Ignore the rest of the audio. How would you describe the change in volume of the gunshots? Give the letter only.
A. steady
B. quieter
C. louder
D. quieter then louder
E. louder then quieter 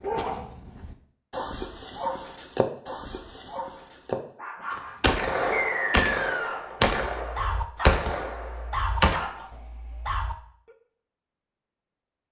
B.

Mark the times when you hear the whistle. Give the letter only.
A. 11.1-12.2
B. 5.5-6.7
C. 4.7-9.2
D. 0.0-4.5
B.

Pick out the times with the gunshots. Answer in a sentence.
The gunshots can be heard from 4.7 to 9.2 s.